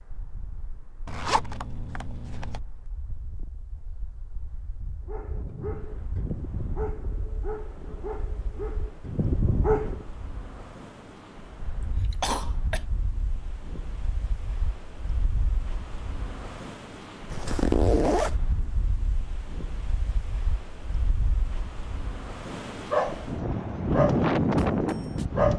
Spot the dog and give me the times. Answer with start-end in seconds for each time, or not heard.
5.0-10.1, 22.7-25.5.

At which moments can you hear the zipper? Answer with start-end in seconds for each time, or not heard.
1.1-2.6, 17.3-18.4.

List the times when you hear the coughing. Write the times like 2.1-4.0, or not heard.
11.8-12.8.